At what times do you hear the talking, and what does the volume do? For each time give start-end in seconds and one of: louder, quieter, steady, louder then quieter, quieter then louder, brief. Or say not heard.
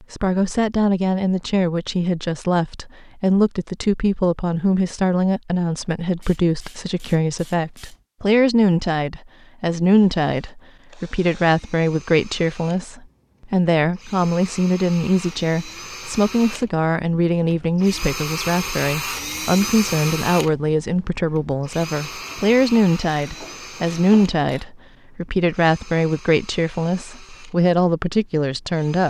0.1-29.0 steady.